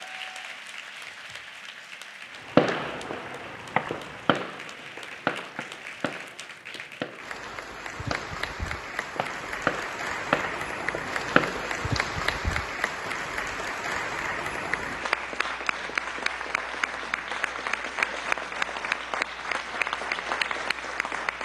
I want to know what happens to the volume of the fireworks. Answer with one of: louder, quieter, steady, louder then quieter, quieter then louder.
quieter then louder.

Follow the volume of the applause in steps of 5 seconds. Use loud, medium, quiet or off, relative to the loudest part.
quiet, medium, loud, loud, loud.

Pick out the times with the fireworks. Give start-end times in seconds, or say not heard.
2.5-11.9.